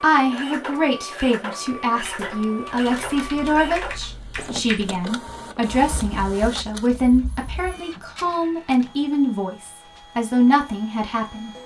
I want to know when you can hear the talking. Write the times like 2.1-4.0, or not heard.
0.0-11.5.